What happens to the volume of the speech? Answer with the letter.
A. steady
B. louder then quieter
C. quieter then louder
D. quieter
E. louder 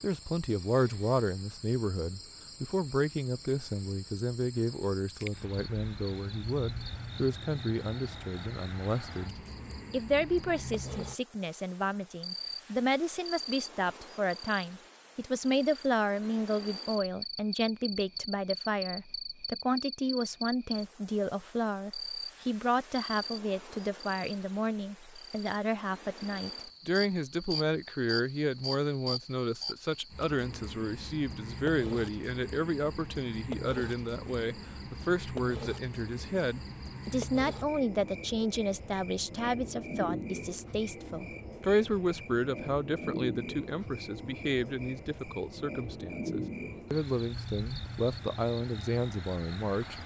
A.